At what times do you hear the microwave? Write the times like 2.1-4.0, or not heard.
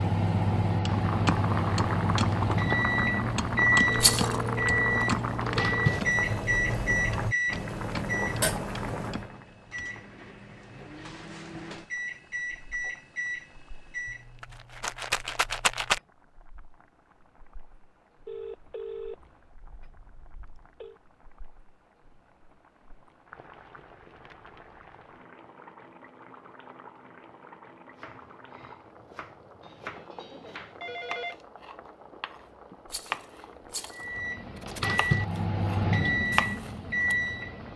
0.0-14.2, 33.9-37.7.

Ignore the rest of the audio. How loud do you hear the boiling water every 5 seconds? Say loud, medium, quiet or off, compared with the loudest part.
loud, loud, quiet, quiet, quiet, quiet, quiet, quiet.